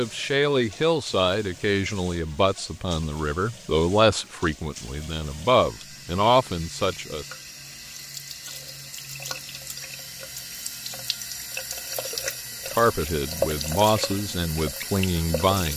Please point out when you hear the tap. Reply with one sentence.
The tap can be heard from 0.0 to 15.7 s.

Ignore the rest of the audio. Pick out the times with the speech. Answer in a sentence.
You can hear the speech from 0.0 to 7.2 s and from 12.8 to 15.7 s.